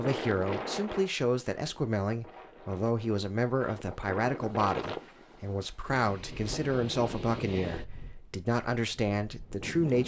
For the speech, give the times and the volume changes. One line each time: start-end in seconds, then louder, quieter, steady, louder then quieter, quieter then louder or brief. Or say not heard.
0.0-10.0 steady.